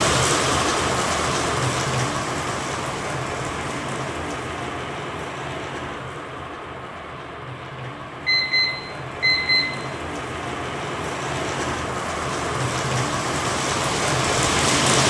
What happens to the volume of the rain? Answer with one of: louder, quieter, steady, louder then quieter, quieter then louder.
quieter then louder.